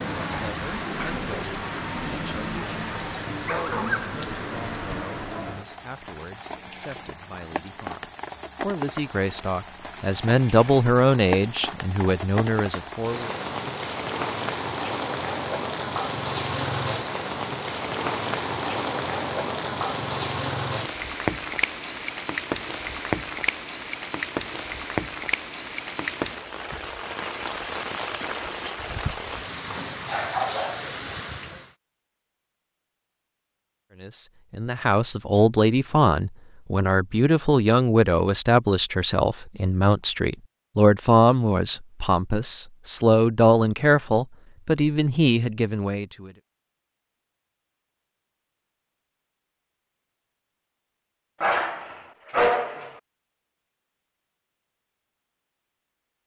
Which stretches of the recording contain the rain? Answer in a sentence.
The rain can be heard from 0.0 to 31.8 s.